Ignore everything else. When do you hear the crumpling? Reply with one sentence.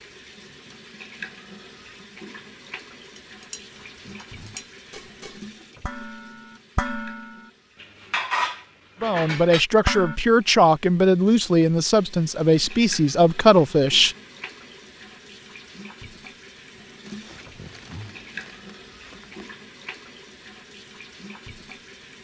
You can hear the crumpling from 3.6 to 4.7 s and from 17.1 to 19.5 s.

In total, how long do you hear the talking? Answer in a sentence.
The talking can be heard for 5 seconds in total.